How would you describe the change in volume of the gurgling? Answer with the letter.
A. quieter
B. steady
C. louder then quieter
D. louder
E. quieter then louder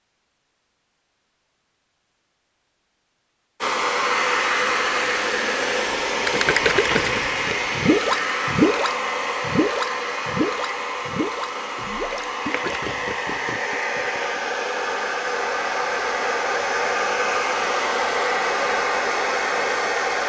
A.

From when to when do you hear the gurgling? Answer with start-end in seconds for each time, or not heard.
6.2-14.4.